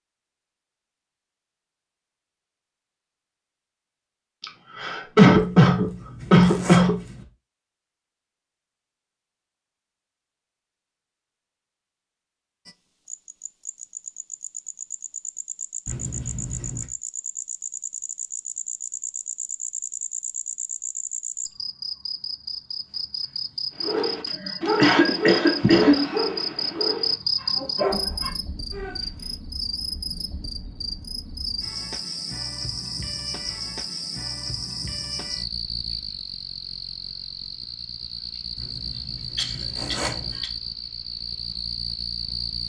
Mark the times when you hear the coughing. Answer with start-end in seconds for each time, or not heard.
4.4-7.0, 24.2-26.1, 39.4-40.5.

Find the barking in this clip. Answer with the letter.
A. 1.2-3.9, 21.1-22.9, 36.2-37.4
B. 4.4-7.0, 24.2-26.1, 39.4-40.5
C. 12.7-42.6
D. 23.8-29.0
D.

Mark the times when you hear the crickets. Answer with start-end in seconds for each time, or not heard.
12.7-42.6.